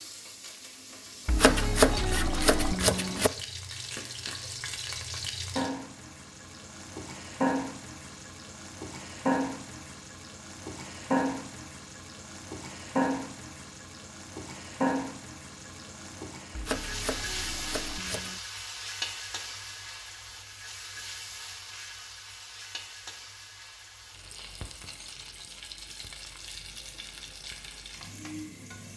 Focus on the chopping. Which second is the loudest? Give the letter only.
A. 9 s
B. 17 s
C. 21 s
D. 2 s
D.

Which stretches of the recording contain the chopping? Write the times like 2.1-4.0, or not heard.
1.2-3.3, 16.5-18.4.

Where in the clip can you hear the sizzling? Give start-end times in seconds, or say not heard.
0.0-28.9.